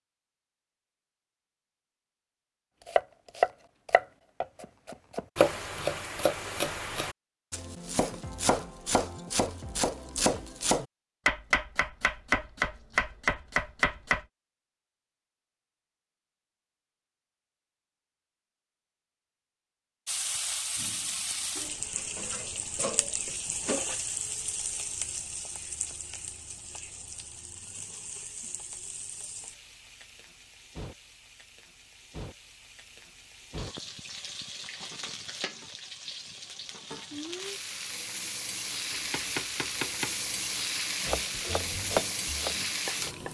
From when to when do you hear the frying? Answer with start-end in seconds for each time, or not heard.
20.1-43.3.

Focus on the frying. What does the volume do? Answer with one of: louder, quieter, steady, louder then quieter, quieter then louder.
quieter then louder.